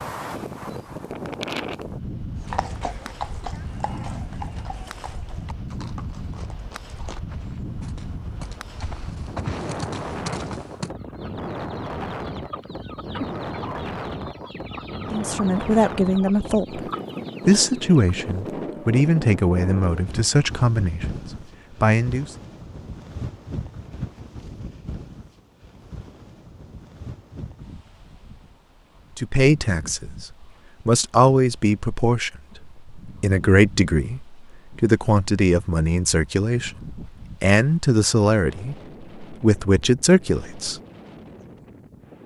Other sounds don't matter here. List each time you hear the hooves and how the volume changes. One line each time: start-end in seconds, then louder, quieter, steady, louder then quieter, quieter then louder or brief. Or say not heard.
2.4-10.9 quieter then louder.